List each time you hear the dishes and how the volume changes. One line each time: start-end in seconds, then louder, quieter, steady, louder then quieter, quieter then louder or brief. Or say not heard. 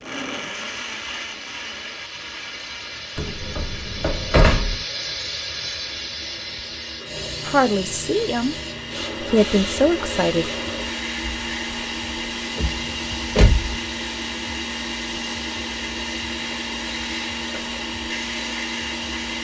not heard.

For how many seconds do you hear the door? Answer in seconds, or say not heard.
3 s.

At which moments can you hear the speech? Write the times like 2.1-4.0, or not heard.
7.5-8.6, 9.2-10.5.